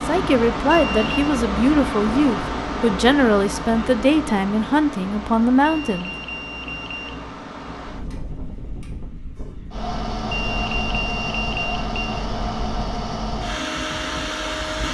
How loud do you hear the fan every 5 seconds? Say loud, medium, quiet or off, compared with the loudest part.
loud, medium, loud.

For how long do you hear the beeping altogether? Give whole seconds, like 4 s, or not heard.
4 s.